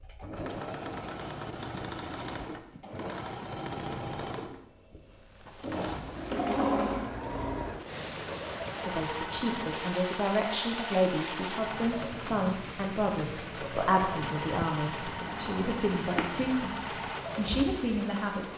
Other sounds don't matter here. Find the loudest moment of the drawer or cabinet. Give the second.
7 s.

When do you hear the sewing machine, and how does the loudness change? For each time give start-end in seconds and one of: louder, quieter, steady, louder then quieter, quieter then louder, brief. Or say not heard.
0.0-18.4 steady.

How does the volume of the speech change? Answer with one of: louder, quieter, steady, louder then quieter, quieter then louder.
steady.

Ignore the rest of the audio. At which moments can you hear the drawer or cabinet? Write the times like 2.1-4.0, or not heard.
6.2-7.1, 15.2-16.3.